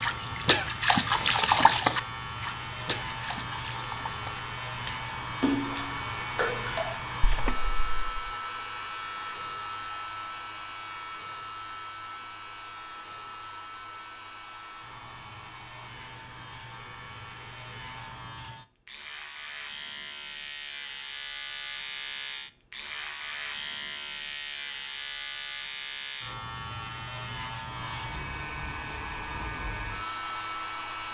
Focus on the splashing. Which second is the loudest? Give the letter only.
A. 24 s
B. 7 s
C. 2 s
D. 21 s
C.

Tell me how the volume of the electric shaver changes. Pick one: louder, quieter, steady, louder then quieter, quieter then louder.
quieter then louder.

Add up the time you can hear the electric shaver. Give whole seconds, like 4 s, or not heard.
31 s.